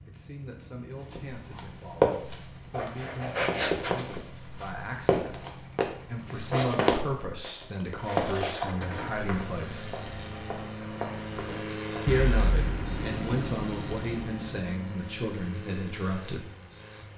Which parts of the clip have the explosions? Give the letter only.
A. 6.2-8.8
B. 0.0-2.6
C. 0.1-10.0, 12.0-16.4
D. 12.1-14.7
D.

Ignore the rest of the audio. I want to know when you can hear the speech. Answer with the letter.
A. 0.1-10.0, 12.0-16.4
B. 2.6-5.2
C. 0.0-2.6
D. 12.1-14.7
A.